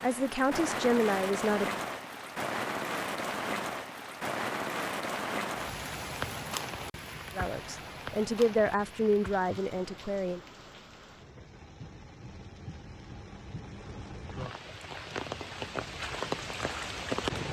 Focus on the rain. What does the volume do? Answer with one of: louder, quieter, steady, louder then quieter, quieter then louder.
quieter then louder.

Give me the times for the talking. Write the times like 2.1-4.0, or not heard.
0.0-1.8, 7.3-10.4.